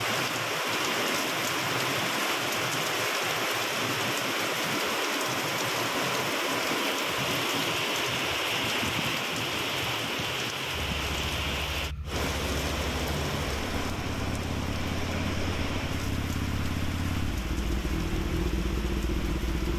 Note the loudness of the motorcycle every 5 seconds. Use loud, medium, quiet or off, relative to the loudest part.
off, off, medium, loud.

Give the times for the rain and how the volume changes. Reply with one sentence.
The rain can be heard from 0.0 to 19.7 s, getting quieter.